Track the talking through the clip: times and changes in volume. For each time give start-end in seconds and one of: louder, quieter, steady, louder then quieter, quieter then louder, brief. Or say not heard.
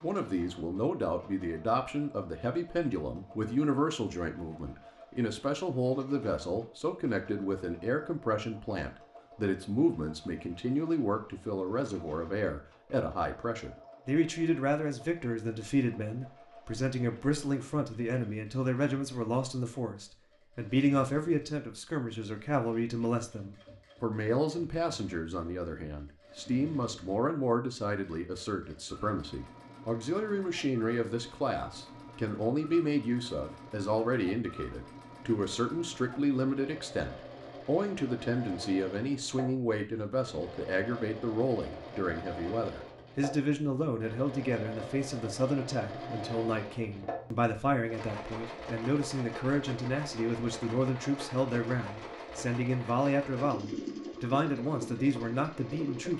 0.0-56.1 steady.